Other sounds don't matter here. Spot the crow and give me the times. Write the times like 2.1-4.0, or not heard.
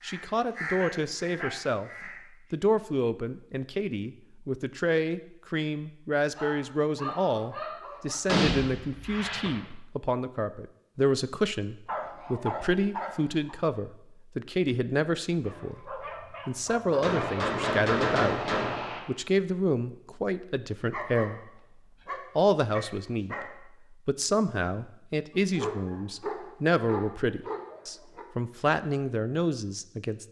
0.0-2.2.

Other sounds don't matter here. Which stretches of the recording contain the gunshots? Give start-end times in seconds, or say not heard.
8.2-9.6, 17.0-19.0.